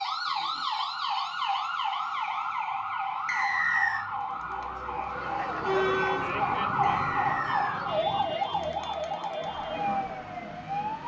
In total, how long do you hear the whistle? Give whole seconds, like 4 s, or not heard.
2 s.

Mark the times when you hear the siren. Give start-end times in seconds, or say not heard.
0.0-11.0.